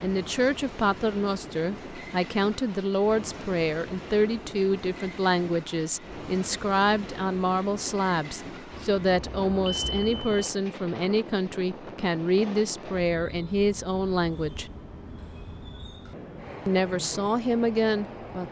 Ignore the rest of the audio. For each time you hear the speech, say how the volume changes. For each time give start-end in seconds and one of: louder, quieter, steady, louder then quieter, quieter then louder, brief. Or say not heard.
0.0-14.7 steady
16.6-18.4 brief.